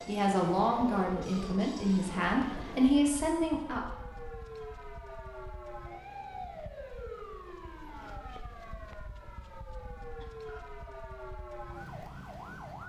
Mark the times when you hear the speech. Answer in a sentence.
You can hear the speech from 0.1 to 4.0 s.